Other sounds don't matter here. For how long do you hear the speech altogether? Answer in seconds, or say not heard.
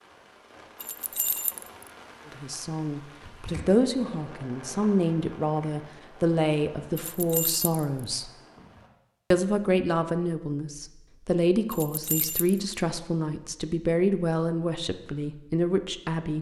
13 s.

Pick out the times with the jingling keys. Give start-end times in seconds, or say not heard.
0.8-1.9, 7.0-8.0, 11.7-12.8.